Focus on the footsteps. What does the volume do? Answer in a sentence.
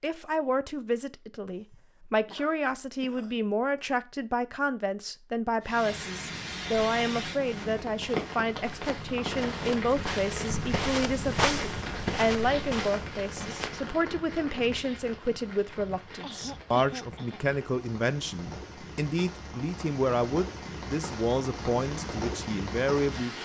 The loudness of the footsteps goes up, then down.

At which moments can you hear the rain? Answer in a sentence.
You can hear the rain from 5.6 to 23.4 s.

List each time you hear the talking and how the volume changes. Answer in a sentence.
You can hear the talking from 0.0 to 23.4 s, at a steady volume.